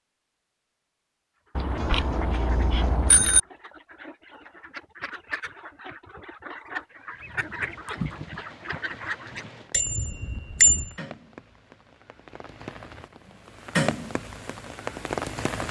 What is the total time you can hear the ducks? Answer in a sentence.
The ducks can be heard for 8 seconds in total.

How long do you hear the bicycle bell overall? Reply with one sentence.
You can hear the bicycle bell for 3 seconds altogether.